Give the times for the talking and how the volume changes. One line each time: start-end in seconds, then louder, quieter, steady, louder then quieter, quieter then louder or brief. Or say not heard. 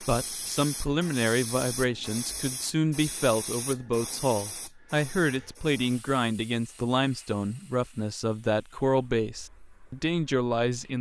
0.0-10.9 steady.